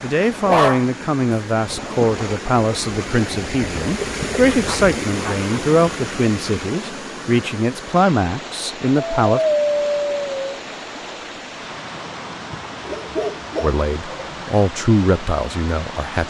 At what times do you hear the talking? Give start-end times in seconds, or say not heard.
0.0-9.4, 13.6-16.2.